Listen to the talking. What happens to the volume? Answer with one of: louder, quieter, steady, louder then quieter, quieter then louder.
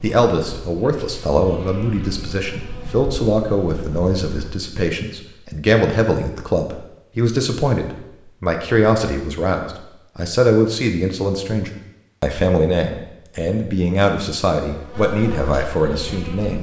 steady.